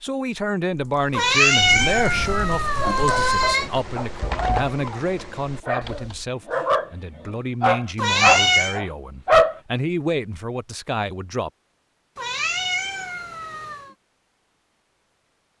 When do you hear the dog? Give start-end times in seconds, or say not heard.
2.7-9.6.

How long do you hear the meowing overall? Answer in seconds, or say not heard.
5 s.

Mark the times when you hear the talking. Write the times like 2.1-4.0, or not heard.
0.0-11.5.